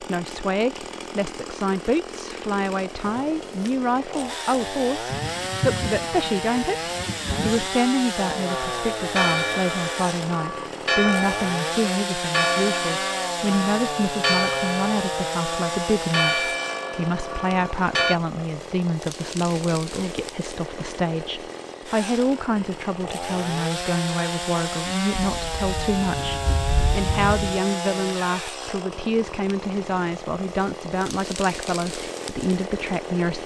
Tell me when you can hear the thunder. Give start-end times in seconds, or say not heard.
5.1-7.7, 25.1-27.6.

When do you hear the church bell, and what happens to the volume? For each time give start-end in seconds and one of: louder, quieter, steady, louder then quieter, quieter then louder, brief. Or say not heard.
8.2-18.2 steady.